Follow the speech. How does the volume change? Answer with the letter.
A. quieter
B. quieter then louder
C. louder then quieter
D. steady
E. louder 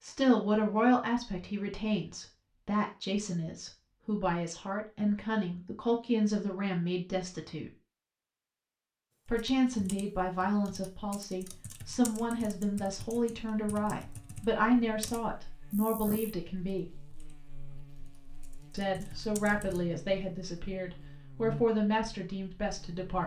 D.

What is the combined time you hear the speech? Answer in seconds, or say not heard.
20 s.